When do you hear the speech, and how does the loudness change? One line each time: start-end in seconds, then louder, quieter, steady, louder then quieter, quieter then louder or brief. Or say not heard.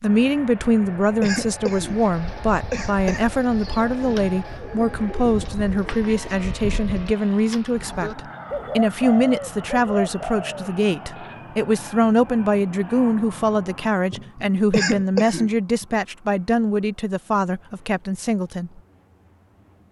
0.0-18.8 steady.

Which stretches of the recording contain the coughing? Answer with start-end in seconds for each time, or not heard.
0.6-3.2, 14.1-15.8.